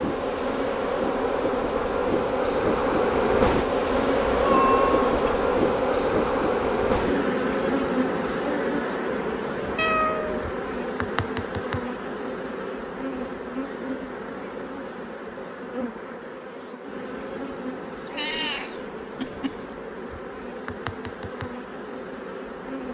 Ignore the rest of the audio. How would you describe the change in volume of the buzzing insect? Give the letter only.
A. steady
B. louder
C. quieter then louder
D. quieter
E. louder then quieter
D.